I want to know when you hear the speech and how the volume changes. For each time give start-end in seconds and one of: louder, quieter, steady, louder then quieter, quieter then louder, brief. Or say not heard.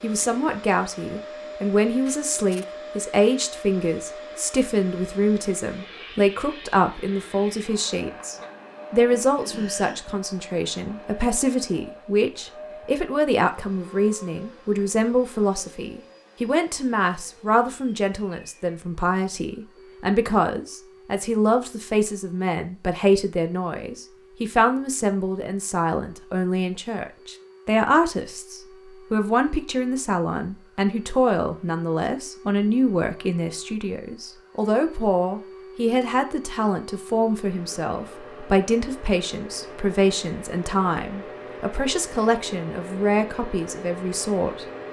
0.0-44.6 steady.